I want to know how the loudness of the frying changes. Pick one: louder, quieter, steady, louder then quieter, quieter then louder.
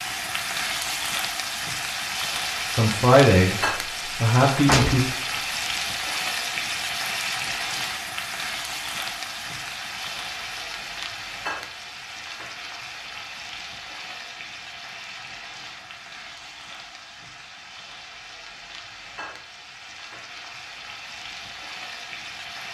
quieter.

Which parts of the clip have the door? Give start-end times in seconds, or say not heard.
4.7-5.4.